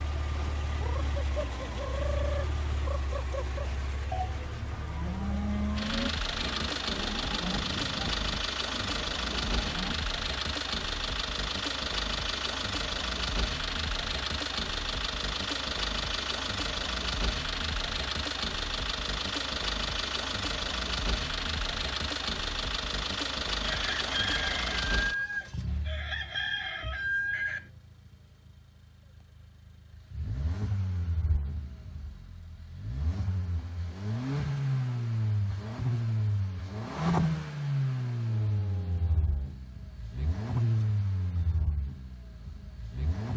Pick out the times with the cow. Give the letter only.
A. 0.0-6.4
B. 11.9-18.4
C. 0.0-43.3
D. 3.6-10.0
D.